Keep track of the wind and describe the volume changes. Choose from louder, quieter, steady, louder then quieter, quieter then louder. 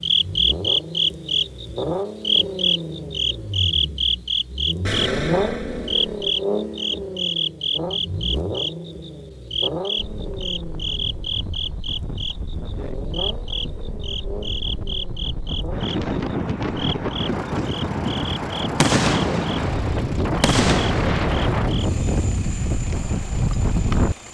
louder.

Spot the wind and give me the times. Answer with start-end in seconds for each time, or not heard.
9.9-24.1.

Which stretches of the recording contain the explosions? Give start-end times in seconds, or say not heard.
4.8-6.3, 18.8-21.9.